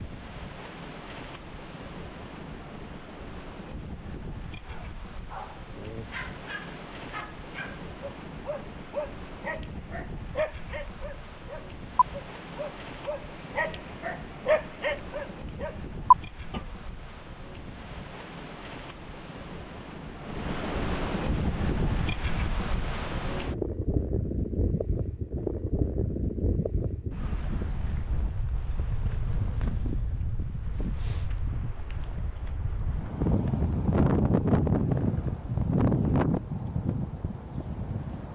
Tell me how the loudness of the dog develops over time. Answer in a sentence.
The volume of the dog goes up.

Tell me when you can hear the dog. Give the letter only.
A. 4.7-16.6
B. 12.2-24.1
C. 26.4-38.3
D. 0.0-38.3
A.